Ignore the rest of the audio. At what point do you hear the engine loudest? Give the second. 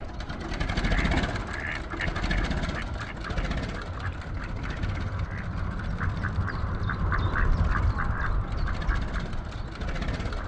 1 s.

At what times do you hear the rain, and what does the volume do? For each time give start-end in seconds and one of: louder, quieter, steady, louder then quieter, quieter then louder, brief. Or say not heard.
not heard.